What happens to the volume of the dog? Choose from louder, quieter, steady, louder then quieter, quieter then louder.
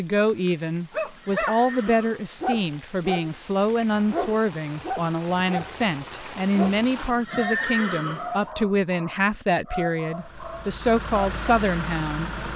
quieter.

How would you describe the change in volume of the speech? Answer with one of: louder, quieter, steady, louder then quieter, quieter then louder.
steady.